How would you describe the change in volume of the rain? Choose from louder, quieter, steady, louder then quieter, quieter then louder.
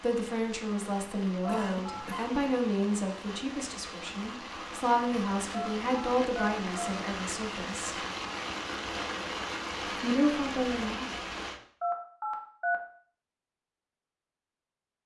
louder.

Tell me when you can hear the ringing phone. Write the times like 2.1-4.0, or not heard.
1.4-2.0, 5.5-6.9, 11.8-12.8.